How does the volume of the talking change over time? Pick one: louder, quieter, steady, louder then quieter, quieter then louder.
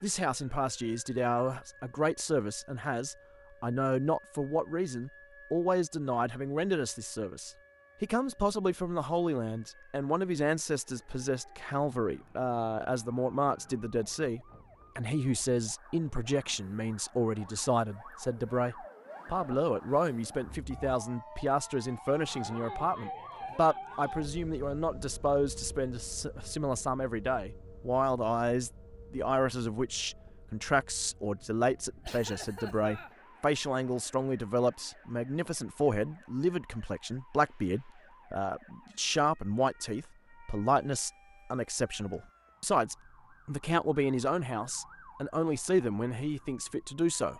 steady.